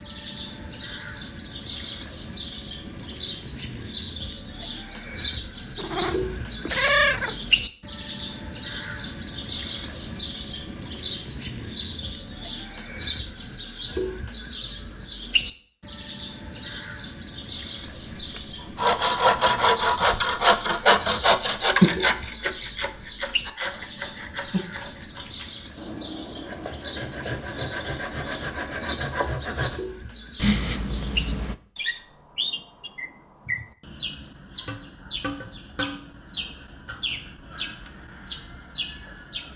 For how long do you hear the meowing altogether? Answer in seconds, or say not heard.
3 s.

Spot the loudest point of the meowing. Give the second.
7 s.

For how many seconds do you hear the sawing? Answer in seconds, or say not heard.
12 s.